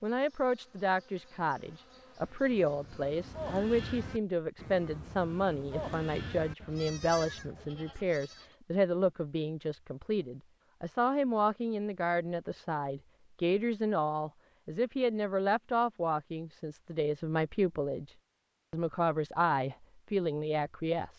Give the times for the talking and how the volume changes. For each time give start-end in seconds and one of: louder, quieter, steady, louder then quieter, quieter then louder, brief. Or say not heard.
0.0-21.1 steady.